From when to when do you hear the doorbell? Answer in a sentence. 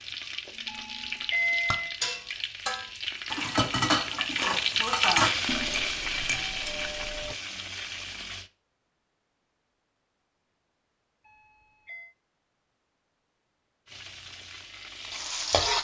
The doorbell can be heard from 0.7 to 2.0 s, from 5.5 to 7.3 s and from 11.2 to 12.2 s.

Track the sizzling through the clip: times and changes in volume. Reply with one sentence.
The sizzling can be heard from 0.0 to 8.5 s, getting louder then quieter; and briefly from 13.8 to 15.7 s.